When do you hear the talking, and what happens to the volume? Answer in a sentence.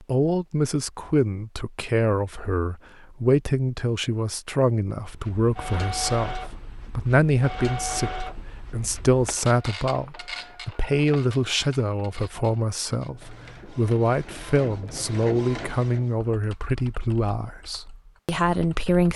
The talking can be heard from 0.1 to 19.1 s, at a steady volume.